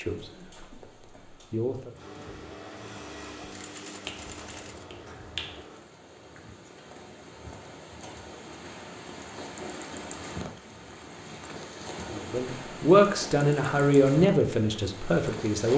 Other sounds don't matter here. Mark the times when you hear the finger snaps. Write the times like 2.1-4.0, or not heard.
4.0-5.7.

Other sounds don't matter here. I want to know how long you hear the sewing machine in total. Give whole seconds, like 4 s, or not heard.
4 s.